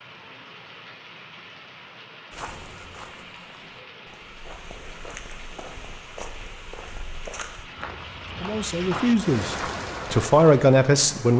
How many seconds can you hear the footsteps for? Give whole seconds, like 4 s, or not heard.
8 s.